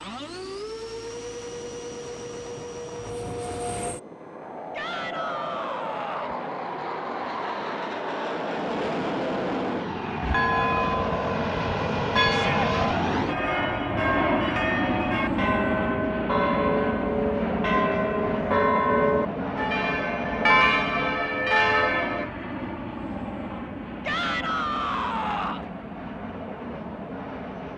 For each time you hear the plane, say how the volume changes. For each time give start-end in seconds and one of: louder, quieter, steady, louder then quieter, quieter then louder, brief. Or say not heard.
0.0-27.7 louder then quieter.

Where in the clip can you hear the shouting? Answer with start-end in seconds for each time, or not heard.
4.7-6.3, 12.2-12.7, 24.1-25.6.